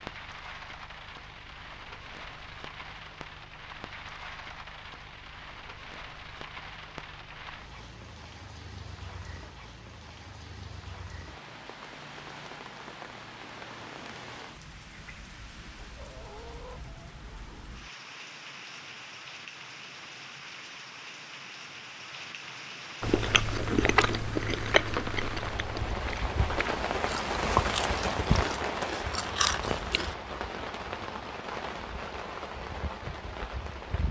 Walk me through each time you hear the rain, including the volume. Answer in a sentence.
The rain can be heard from 0.0 to 34.0 s, getting louder.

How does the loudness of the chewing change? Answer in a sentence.
The loudness of the chewing goes down, then up.